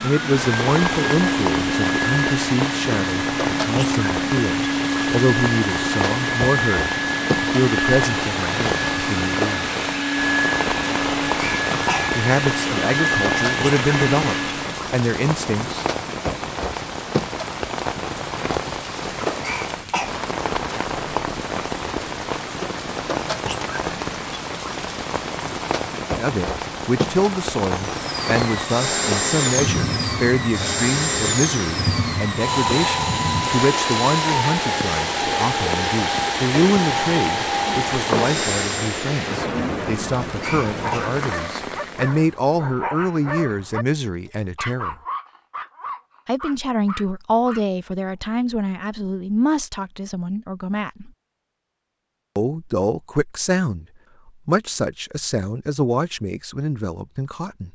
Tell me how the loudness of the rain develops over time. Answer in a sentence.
The loudness of the rain stays about the same.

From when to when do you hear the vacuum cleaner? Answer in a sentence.
The vacuum cleaner can be heard from 0.0 to 14.9 s and from 27.9 to 39.0 s.